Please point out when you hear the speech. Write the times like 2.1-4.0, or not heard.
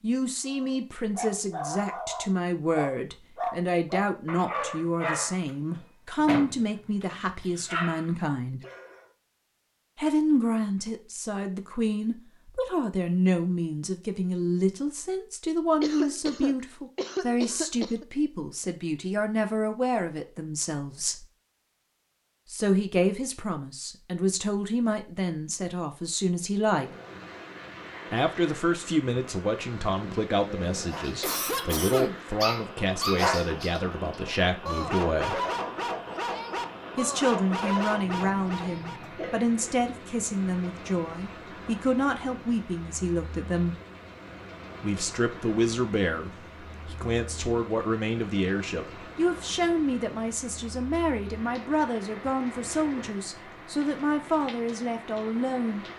0.0-8.6, 9.9-21.2, 22.5-26.9, 28.1-35.4, 37.0-43.8, 44.8-55.9.